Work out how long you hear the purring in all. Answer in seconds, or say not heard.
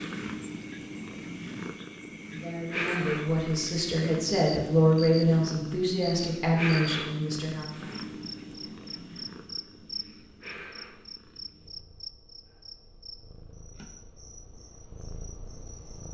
16 s.